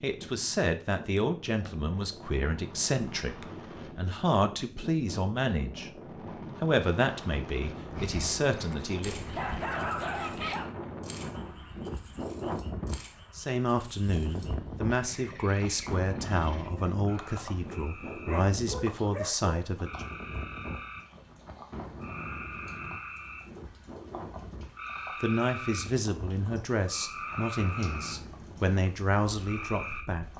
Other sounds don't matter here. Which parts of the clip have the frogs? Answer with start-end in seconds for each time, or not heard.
9.0-30.3.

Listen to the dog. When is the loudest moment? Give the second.
10 s.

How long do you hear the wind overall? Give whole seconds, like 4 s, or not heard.
30 s.